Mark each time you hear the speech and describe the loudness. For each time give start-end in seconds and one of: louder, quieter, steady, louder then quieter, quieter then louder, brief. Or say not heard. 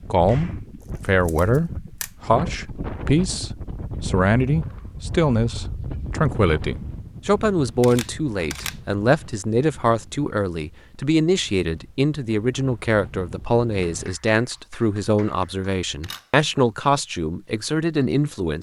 0.1-18.5 steady.